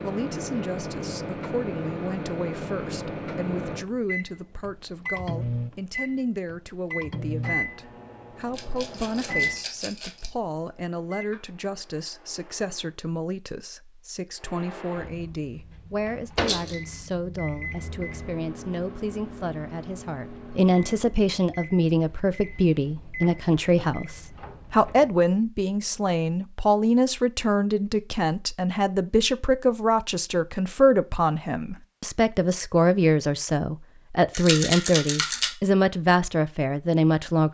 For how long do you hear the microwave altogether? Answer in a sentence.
You can hear the microwave for 24 seconds altogether.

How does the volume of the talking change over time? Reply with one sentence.
The loudness of the talking goes up.